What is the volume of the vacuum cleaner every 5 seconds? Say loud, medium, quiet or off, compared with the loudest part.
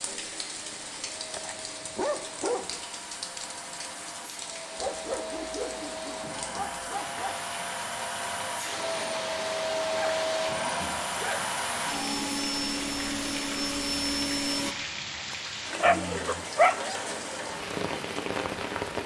quiet, loud, loud, off.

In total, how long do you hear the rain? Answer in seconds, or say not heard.
19 s.